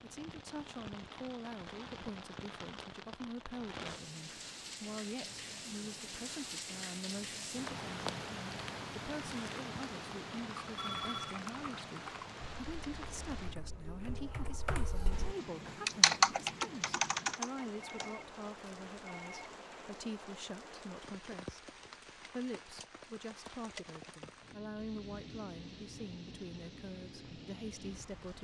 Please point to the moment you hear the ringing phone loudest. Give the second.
11 s.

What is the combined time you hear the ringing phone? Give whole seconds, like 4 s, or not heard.
3 s.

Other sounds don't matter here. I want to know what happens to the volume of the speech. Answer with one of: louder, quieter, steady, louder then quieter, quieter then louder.
steady.